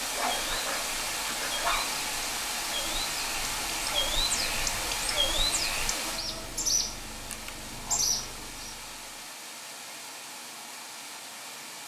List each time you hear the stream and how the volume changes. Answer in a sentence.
The stream can be heard from 0.0 to 11.8 s, getting quieter.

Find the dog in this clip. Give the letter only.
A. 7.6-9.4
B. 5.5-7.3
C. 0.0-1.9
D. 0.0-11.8
C.